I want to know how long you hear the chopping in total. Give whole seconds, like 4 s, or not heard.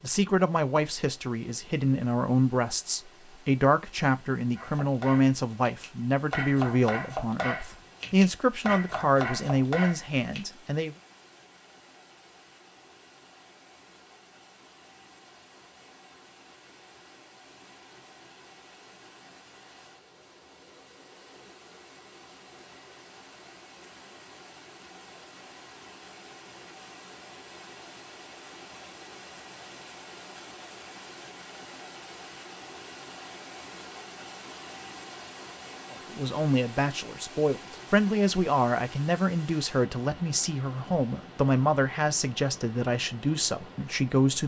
6 s.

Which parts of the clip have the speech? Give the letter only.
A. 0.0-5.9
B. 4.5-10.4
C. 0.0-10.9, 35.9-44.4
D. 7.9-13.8
C.